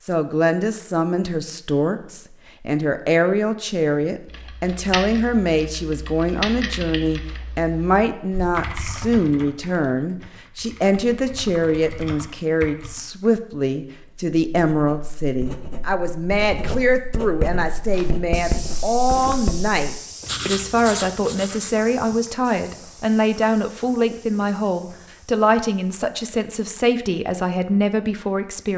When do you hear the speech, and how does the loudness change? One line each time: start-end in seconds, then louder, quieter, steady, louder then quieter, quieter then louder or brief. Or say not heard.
0.0-28.7 steady.